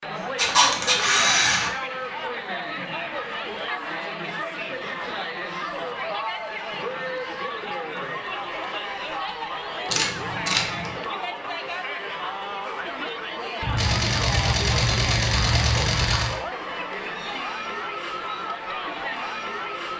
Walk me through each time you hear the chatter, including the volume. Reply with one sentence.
The chatter can be heard from 0.0 to 19.9 s, at a steady volume.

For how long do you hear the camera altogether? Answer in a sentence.
You can hear the camera for 5 seconds altogether.